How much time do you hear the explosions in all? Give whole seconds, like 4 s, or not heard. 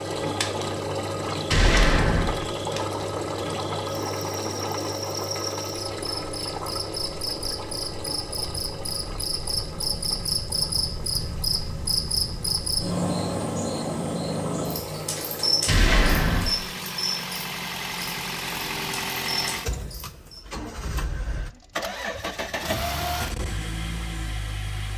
2 s.